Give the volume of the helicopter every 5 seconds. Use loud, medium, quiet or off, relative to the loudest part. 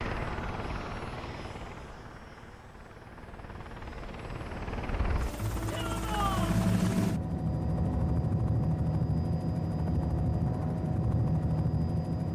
medium, loud, loud.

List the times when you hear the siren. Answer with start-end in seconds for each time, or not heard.
not heard.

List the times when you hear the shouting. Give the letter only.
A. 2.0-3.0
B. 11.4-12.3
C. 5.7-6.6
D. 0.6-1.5
C.